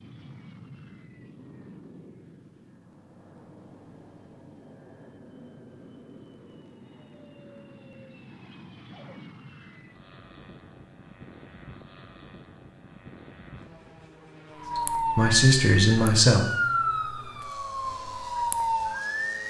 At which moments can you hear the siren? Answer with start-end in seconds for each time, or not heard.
14.6-19.4.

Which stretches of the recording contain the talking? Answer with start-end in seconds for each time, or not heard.
14.8-16.4.